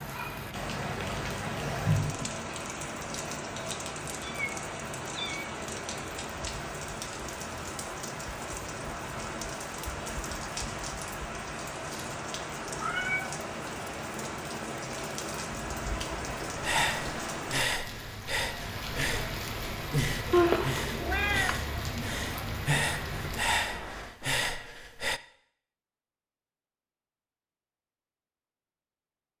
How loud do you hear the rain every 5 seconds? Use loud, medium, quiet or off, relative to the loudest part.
loud, loud, loud, loud, loud, off.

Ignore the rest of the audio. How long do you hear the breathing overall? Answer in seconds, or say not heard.
9 s.